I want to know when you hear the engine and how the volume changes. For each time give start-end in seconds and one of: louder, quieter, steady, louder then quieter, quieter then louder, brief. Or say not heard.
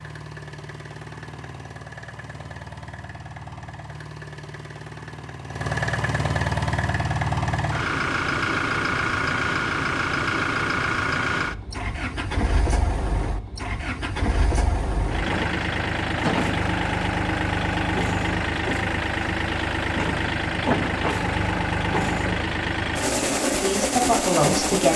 0.0-24.9 louder.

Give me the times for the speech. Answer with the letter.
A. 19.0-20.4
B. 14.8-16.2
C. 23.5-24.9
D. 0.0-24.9
C.